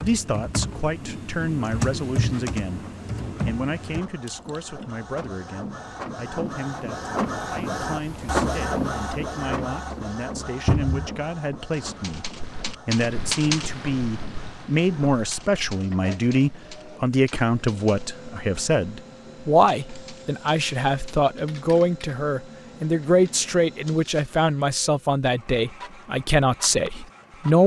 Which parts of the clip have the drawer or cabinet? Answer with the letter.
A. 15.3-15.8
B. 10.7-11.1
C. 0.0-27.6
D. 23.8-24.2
B.